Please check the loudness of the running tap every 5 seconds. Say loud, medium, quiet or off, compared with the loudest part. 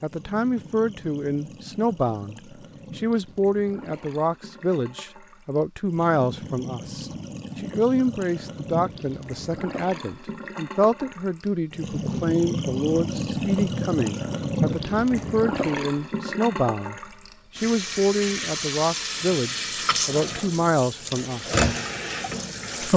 quiet, medium, loud, loud, loud.